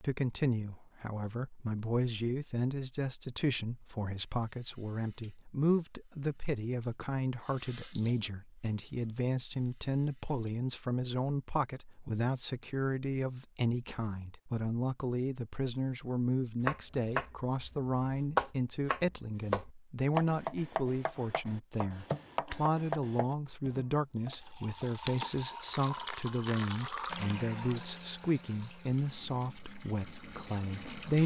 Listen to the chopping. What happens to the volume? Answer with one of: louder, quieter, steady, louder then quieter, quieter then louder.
quieter.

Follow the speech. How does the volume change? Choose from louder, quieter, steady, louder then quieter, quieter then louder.
steady.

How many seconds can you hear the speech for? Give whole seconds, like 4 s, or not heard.
31 s.